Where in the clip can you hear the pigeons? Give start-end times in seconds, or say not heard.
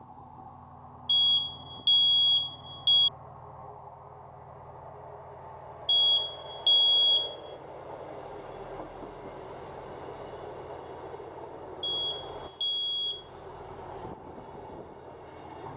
not heard.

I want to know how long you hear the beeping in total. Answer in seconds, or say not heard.
5 s.